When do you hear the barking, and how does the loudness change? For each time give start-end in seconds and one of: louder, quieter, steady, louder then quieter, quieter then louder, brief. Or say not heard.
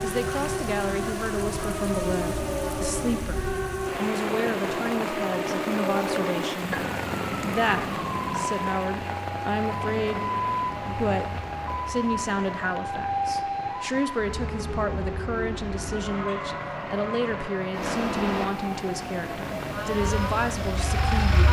not heard.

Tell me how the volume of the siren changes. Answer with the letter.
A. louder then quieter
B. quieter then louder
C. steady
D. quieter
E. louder
C.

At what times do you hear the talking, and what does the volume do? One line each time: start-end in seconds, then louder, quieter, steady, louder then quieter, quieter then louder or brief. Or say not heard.
0.0-21.4 steady.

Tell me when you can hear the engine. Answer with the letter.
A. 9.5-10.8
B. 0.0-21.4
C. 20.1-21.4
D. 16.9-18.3
C.